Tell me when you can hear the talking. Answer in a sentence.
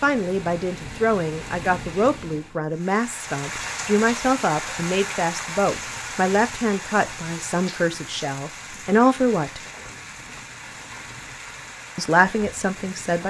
The talking can be heard from 0.0 to 9.6 s and from 11.9 to 13.2 s.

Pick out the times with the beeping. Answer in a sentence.
The beeping can't be heard in this clip.